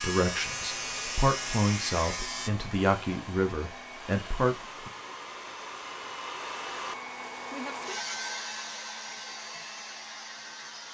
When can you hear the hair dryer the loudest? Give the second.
8 s.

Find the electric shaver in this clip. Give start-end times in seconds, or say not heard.
0.0-2.5.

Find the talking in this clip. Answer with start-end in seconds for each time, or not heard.
0.0-4.9.